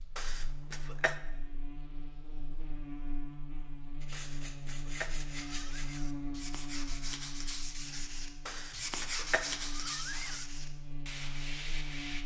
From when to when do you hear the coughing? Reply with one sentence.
The coughing can be heard from 0.1 to 1.1 s, from 4.1 to 6.2 s and from 8.4 to 10.4 s.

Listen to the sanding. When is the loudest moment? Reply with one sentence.
The volume of the sanding peaks at 9 seconds.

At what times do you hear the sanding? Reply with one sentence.
You can hear the sanding from 4.0 to 12.2 s.